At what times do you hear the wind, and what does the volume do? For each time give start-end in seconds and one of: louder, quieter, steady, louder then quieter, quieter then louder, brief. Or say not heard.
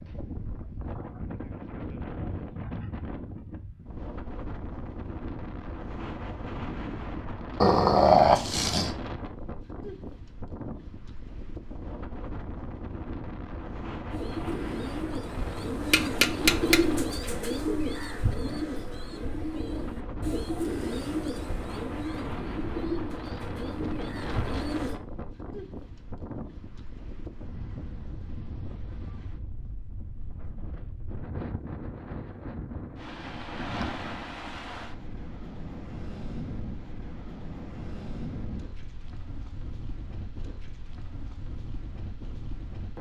0.0-42.9 steady.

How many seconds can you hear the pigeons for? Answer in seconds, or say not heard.
11 s.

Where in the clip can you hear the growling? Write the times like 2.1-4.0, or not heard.
7.6-8.9.